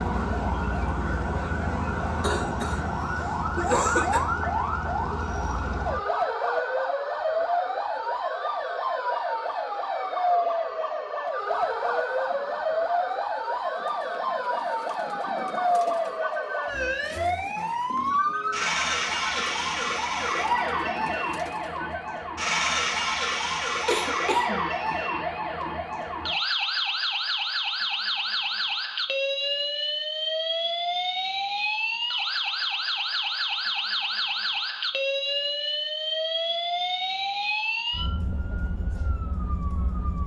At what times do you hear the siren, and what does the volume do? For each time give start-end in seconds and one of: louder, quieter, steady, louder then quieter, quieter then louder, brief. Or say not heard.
0.0-40.2 steady.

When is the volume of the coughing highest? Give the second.
4 s.